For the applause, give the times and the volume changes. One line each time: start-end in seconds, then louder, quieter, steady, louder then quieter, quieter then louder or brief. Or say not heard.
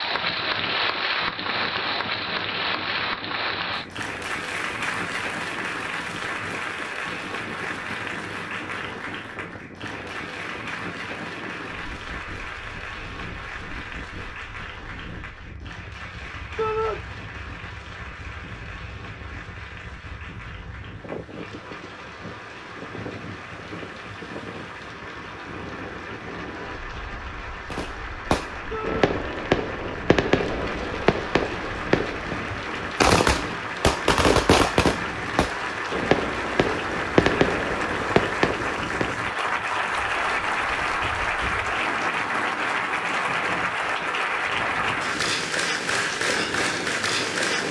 0.0-47.6 quieter then louder.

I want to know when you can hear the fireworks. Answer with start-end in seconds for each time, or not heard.
27.7-39.1.